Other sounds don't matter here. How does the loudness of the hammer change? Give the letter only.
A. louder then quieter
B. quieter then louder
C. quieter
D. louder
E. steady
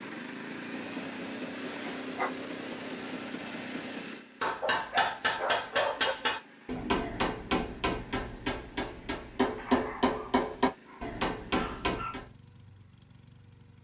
D.